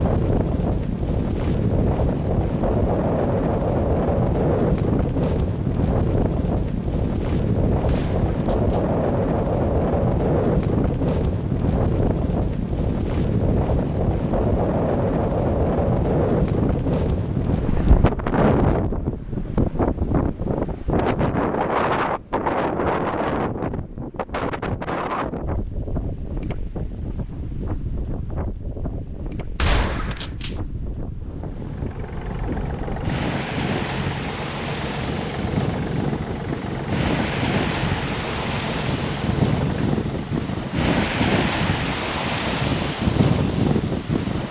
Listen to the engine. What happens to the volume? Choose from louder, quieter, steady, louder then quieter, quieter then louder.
steady.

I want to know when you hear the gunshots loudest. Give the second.
30 s.